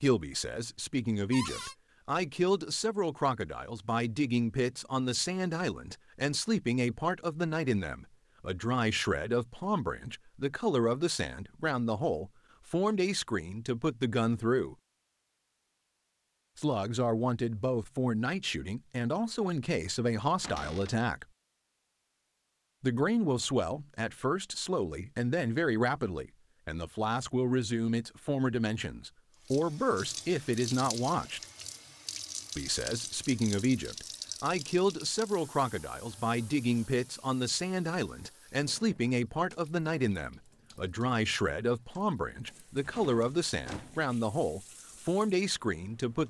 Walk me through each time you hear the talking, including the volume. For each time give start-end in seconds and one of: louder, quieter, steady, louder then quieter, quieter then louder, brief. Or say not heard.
0.0-14.8 steady
16.6-21.2 steady
22.8-31.4 steady
32.5-46.2 steady.